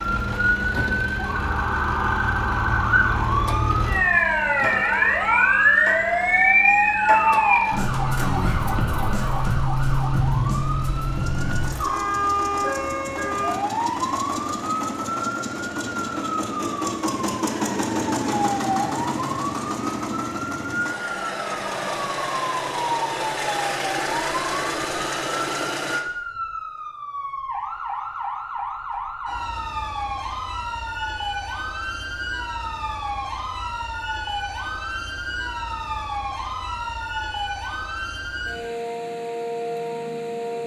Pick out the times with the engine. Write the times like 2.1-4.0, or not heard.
0.0-26.1.